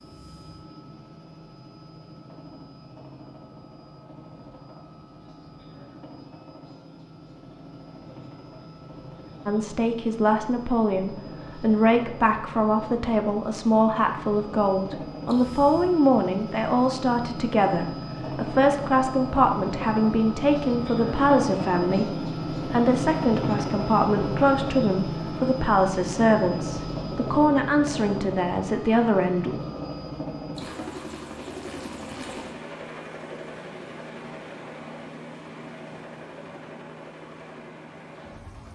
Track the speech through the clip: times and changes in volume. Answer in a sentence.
You can hear the speech from 9.4 to 29.6 s, at a steady volume.